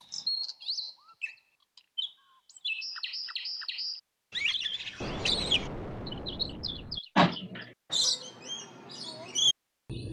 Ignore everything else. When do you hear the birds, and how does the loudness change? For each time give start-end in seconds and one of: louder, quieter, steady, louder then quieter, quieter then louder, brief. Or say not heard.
0.0-10.0 louder.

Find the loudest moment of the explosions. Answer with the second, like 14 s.
5 s.